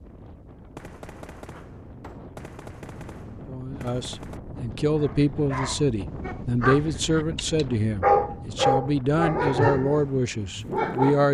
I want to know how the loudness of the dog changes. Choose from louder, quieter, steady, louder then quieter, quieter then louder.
louder then quieter.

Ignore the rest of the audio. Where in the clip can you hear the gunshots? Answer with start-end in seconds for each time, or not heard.
0.8-4.4.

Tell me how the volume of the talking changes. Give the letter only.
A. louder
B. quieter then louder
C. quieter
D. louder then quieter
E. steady
E.